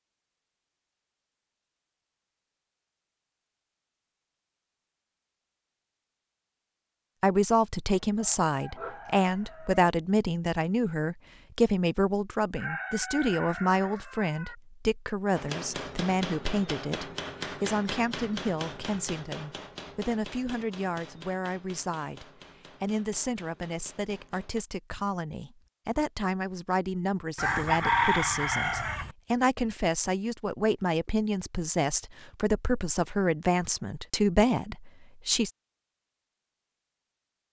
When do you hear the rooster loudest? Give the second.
28 s.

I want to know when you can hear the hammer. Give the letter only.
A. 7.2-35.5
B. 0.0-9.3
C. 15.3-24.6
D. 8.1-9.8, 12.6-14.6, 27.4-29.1
C.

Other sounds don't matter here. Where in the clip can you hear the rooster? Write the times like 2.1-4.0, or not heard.
8.1-9.8, 12.6-14.6, 27.4-29.1.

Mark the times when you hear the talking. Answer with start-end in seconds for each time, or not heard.
7.2-35.5.